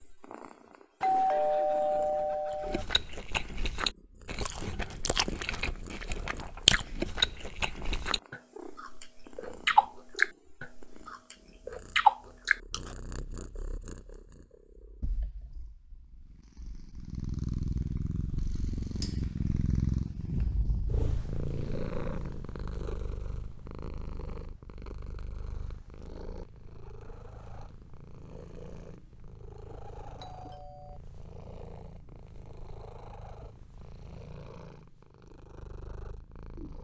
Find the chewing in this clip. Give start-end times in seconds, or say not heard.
2.5-12.9.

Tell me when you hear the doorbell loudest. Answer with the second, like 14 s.
1 s.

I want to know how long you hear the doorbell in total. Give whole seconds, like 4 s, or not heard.
3 s.